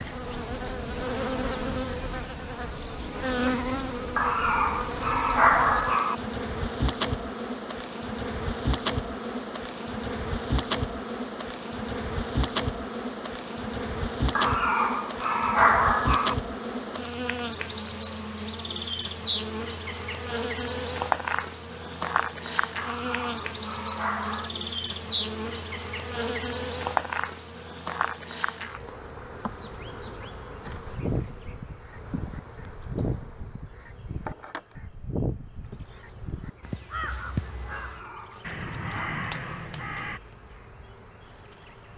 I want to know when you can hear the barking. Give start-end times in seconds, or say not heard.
4.2-6.2, 14.3-16.4, 22.8-24.5, 37.7-39.7.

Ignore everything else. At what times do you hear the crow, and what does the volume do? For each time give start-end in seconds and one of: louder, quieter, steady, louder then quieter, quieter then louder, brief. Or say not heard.
30.6-40.2 steady.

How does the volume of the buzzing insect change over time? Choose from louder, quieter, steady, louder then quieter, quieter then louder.
quieter.